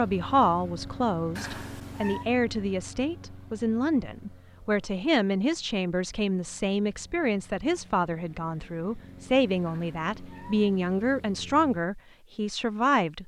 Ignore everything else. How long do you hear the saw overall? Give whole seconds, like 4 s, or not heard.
not heard.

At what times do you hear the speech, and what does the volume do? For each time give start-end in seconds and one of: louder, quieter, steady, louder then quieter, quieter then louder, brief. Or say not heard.
0.0-13.2 steady.